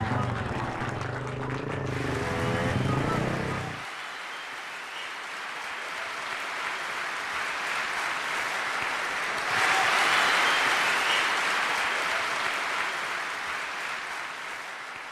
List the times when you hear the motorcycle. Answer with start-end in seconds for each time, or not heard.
0.0-3.9.